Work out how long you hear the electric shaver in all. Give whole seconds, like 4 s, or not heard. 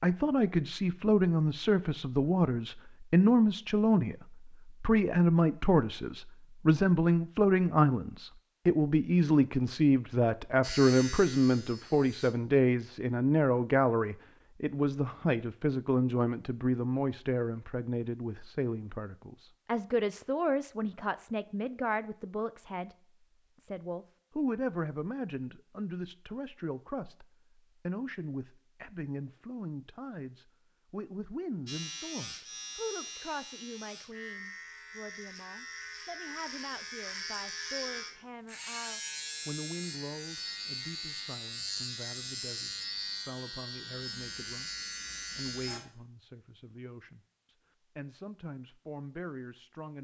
16 s.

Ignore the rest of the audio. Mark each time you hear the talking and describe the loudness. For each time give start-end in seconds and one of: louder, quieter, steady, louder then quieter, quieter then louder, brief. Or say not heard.
0.0-22.9 quieter
23.6-49.9 quieter.